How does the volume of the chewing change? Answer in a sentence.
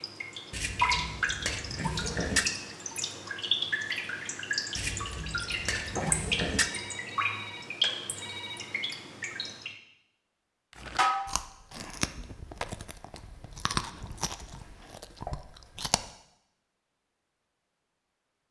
The volume of the chewing goes up, then down.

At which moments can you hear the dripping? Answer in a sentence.
You can hear the dripping from 0.0 to 9.8 s.